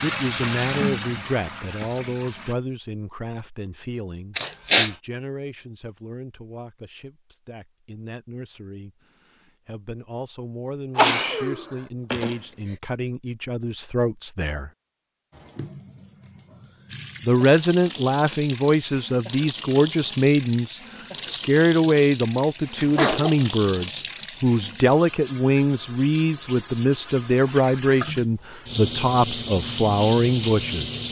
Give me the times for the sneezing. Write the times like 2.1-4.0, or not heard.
4.3-5.0, 10.9-12.3, 22.8-23.4.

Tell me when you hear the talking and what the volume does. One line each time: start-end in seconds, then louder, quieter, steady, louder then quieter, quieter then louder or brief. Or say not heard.
0.0-14.7 quieter then louder
17.2-31.0 steady.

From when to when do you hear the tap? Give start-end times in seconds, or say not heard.
0.0-2.5, 15.3-31.0.